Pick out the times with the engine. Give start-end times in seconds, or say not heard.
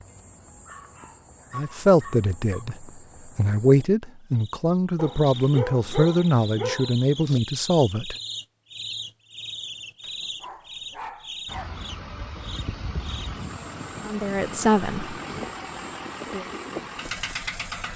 11.4-17.9.